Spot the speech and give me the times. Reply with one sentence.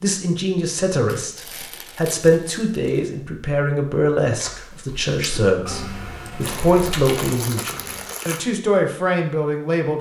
You can hear the speech from 0.0 to 9.9 s.